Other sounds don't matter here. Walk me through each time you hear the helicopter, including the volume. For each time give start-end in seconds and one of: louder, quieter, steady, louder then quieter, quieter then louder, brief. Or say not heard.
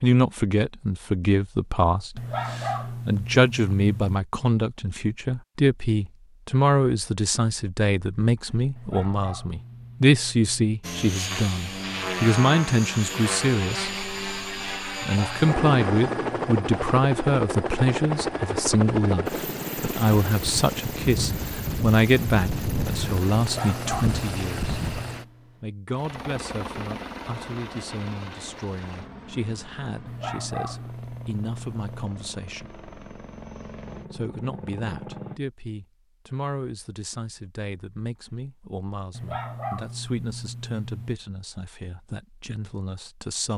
10.8-35.4 quieter.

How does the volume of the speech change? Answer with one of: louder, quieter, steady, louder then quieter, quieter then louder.
quieter.